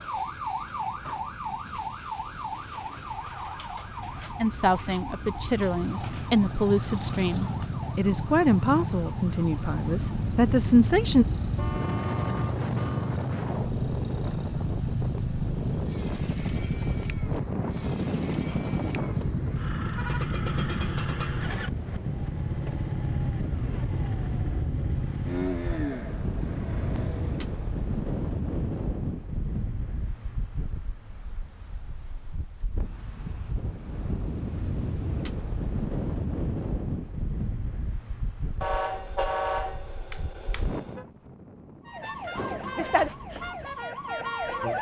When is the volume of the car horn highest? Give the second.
39 s.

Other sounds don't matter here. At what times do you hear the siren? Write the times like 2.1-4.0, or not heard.
0.0-10.1, 41.9-44.7.